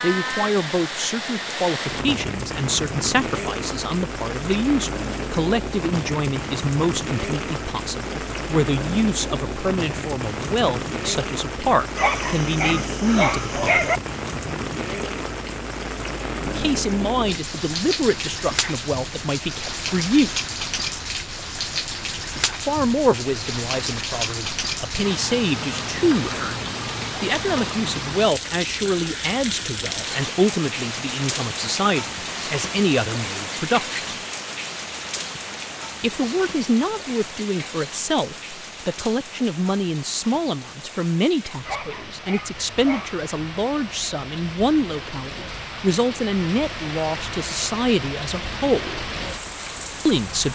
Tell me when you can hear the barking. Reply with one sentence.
The barking can be heard from 11.9 to 14.0 s and from 41.6 to 43.2 s.